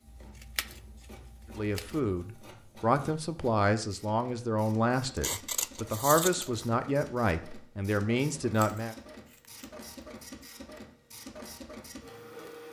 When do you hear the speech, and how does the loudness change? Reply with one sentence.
You can hear the speech from 1.6 to 8.9 s, at a steady volume.